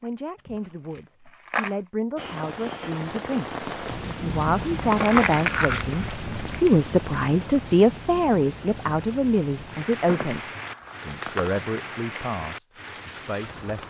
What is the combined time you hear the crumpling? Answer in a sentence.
The crumpling can be heard for 5 seconds in total.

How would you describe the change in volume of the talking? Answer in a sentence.
The volume of the talking goes up, then down.